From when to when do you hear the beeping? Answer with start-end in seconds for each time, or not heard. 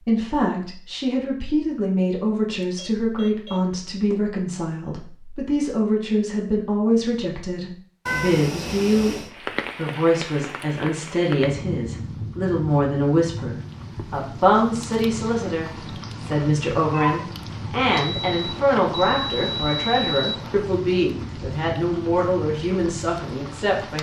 2.6-4.2, 18.1-20.6.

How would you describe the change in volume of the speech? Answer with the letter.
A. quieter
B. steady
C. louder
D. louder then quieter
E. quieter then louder
B.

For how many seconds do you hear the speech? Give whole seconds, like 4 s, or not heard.
23 s.